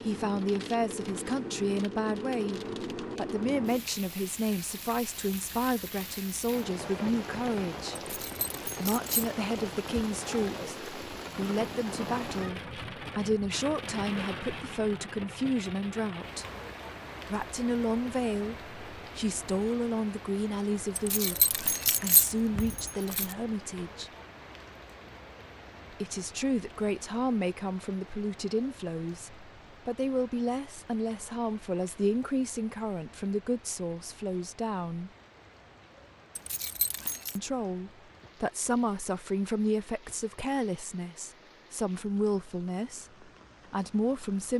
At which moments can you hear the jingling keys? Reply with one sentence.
You can hear the jingling keys from 8.0 to 9.3 s, from 20.9 to 23.4 s and from 36.4 to 37.4 s.